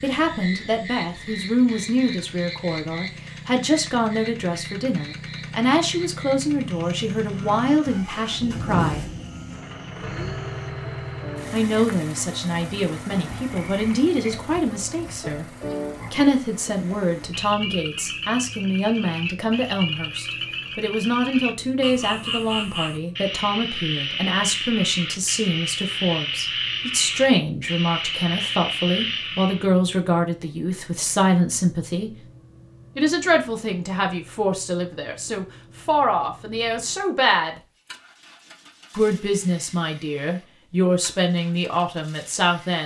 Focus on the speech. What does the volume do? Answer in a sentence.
The loudness of the speech stays about the same.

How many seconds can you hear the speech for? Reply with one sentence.
You can hear the speech for 38 seconds altogether.